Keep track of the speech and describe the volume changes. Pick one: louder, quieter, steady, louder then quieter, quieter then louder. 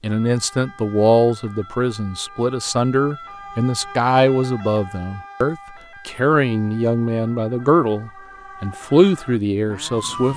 steady.